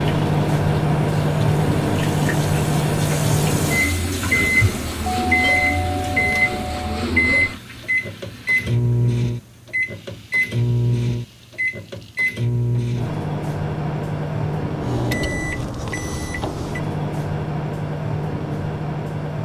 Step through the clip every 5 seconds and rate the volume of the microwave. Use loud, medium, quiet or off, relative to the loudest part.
loud, loud, loud, medium.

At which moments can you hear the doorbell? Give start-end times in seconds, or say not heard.
5.3-7.0.